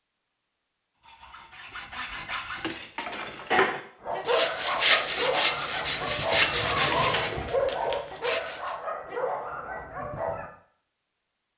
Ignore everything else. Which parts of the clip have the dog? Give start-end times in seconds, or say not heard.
4.0-10.5.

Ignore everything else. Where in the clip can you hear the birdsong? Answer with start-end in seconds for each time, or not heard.
not heard.